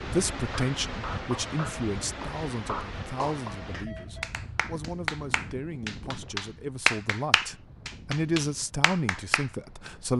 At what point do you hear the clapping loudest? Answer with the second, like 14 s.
7 s.